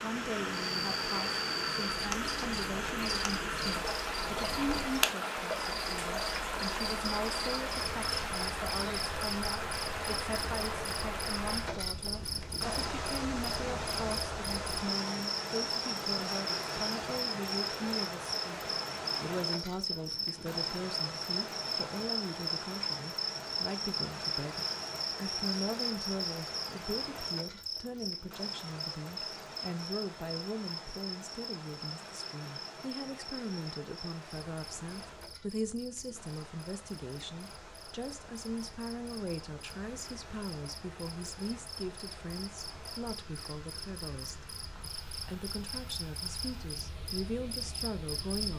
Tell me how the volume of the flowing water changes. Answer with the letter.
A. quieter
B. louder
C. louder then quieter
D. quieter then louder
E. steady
A.